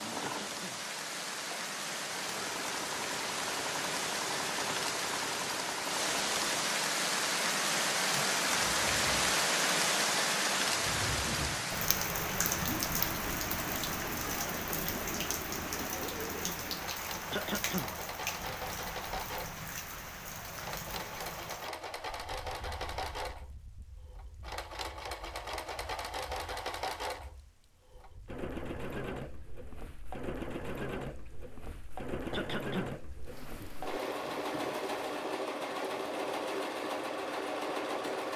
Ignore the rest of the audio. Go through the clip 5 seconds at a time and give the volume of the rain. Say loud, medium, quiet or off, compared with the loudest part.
medium, loud, loud, medium, quiet, quiet, quiet, quiet.